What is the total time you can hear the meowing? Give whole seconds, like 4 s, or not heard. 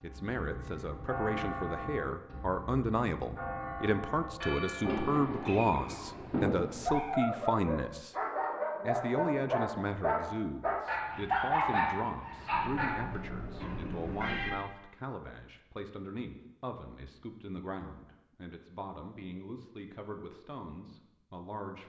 4 s.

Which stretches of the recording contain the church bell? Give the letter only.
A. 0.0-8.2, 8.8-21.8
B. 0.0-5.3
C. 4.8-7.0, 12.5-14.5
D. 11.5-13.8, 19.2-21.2
B.